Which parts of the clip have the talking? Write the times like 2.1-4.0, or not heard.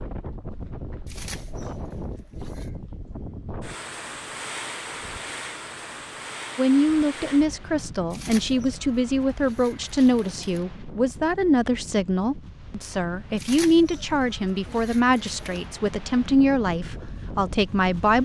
6.5-18.2.